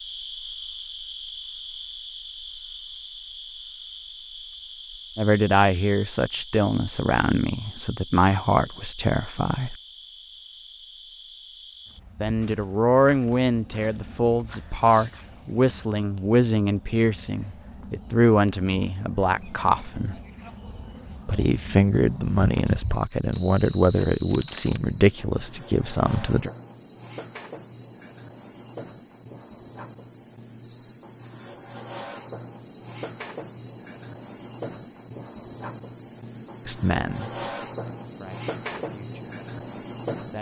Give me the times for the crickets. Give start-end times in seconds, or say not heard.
0.0-40.3.